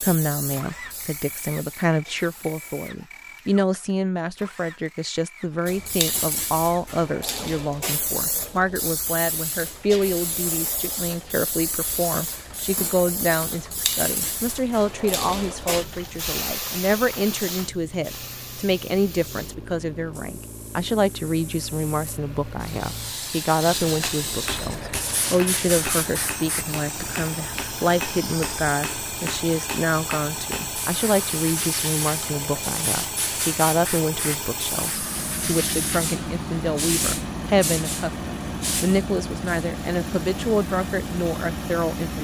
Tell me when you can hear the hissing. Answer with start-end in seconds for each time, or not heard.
0.0-2.9, 5.7-26.6, 30.8-42.1.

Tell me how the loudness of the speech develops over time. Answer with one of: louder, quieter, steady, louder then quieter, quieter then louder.
steady.